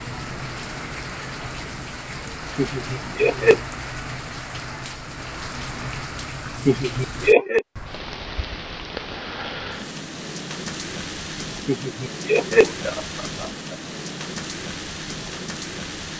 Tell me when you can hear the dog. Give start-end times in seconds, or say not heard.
not heard.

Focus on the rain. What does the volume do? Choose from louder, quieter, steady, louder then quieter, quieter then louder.
steady.